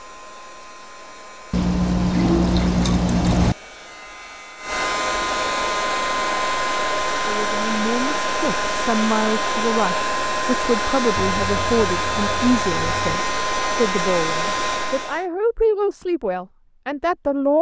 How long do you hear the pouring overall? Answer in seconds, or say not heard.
4 s.